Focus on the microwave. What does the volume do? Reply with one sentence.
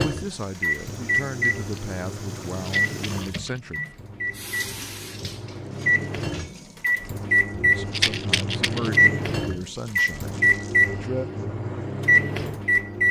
The loudness of the microwave goes down, then up.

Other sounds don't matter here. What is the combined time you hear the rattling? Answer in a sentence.
You can hear the rattling for 2 seconds altogether.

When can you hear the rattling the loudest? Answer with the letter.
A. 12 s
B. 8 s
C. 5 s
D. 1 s
B.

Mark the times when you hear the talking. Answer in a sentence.
You can hear the talking from 0.0 to 3.8 s and from 7.6 to 11.2 s.